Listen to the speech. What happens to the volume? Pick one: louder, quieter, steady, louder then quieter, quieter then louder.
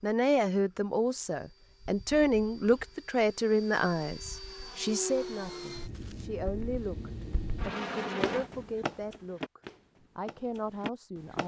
quieter.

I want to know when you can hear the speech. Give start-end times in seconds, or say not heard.
0.0-11.4.